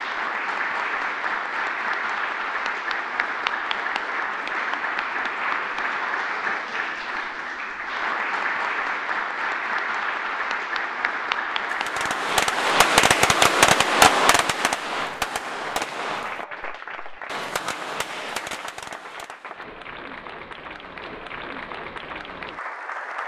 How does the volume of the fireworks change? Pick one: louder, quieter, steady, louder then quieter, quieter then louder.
quieter.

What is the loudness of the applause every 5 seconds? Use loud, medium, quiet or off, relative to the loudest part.
loud, loud, loud, medium, medium.